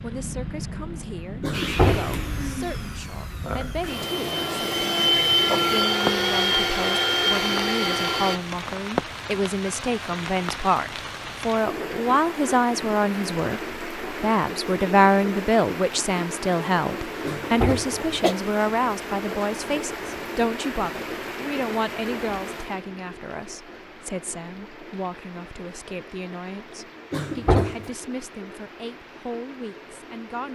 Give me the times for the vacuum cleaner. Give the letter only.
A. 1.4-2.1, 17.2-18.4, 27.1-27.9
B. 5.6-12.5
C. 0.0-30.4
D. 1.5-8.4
D.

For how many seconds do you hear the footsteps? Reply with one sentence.
The footsteps can't be heard in this clip.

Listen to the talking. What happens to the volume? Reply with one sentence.
The volume of the talking goes up, then down.